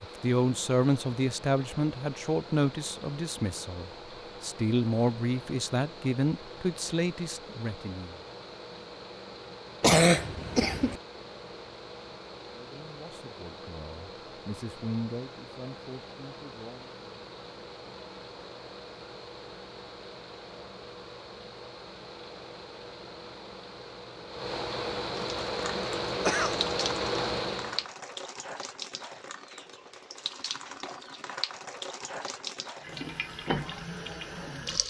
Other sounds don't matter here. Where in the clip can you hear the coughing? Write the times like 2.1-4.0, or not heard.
9.8-10.9, 26.2-26.6.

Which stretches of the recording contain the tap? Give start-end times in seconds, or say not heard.
25.1-34.8.